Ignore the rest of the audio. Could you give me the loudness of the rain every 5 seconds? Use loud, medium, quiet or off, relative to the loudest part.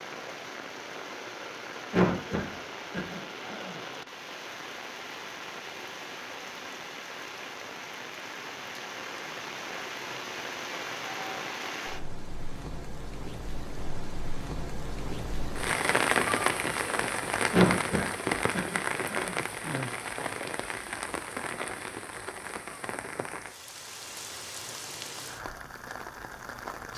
medium, medium, medium, loud, medium, medium.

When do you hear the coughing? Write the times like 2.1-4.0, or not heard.
1.9-3.8, 17.5-19.4.